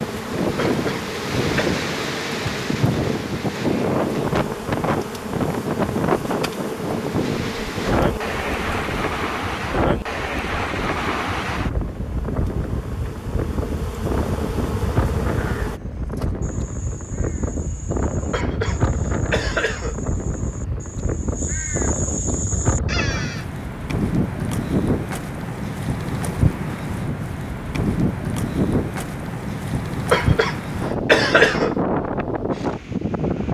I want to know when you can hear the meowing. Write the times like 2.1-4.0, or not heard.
not heard.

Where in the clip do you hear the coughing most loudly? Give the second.
31 s.